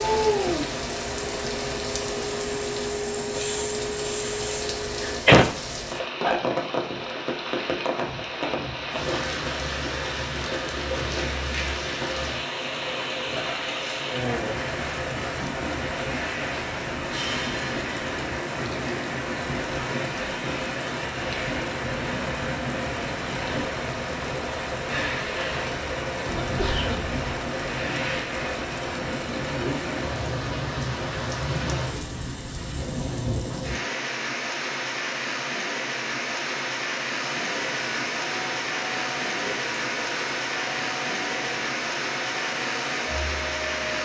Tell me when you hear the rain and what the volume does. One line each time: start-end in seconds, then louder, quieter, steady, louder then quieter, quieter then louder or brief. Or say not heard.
0.0-44.0 steady.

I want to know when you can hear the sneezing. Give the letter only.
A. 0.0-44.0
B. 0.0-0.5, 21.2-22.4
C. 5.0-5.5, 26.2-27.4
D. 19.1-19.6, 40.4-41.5
C.